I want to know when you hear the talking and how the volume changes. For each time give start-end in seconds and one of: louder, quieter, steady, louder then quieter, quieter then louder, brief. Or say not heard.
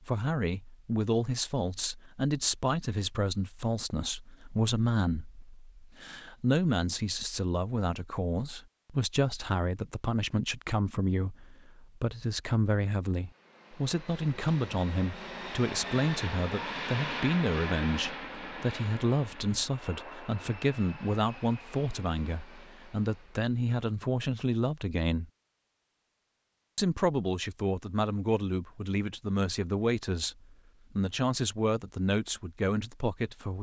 0.0-25.3 steady
26.8-33.5 steady.